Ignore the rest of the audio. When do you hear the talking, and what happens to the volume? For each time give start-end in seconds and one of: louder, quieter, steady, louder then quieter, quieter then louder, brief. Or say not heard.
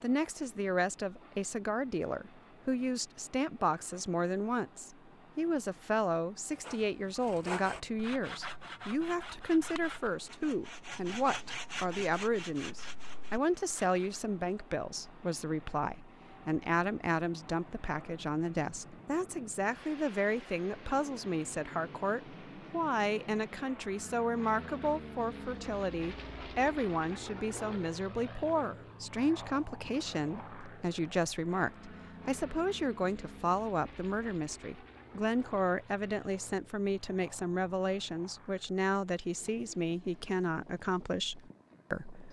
0.0-42.2 steady.